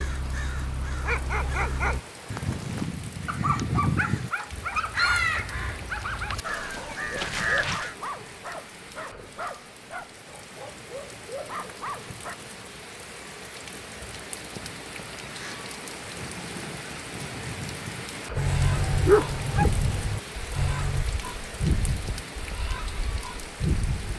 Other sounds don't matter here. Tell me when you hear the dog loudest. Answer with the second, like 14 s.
19 s.